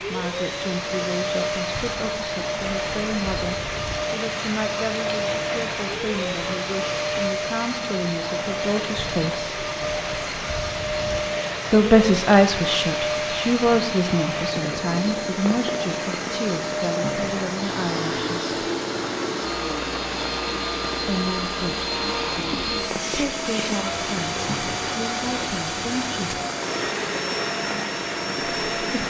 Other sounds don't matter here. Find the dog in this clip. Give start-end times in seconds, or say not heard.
not heard.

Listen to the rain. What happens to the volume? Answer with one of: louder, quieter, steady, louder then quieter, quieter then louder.
steady.